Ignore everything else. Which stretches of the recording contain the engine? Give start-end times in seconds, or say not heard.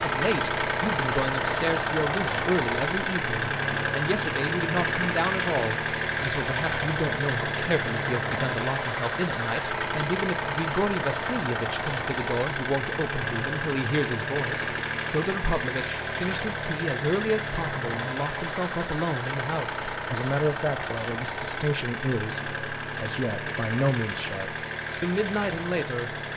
0.0-26.3.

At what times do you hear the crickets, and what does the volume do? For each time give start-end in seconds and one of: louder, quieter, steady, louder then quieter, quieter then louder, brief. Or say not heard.
not heard.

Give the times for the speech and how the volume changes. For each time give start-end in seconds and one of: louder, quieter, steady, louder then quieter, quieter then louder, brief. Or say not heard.
0.0-26.1 steady.